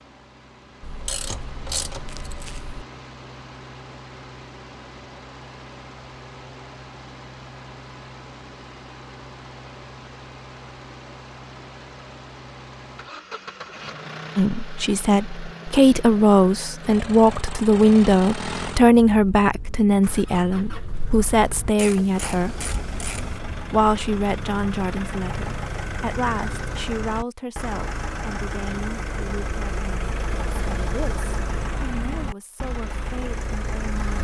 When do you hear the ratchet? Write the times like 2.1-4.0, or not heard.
0.8-2.8, 21.8-23.4.